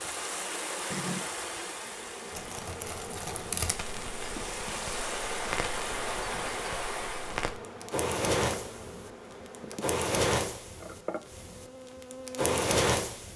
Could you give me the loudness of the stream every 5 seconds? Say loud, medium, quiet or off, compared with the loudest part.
loud, loud, off.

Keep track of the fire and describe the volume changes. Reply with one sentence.
The loudness of the fire goes up.